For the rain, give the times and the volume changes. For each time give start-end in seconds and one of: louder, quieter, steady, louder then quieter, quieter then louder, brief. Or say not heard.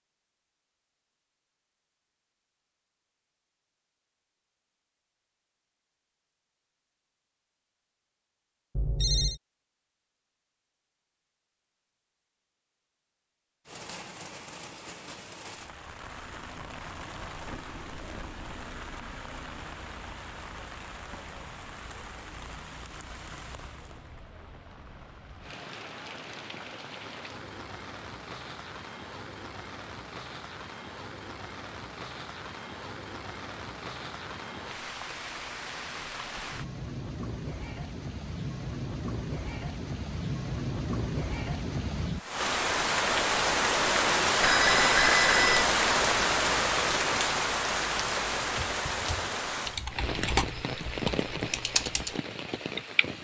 13.7-53.1 louder.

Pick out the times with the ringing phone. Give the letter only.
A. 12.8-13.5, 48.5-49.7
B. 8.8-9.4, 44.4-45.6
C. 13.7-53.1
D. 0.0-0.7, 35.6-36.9
B.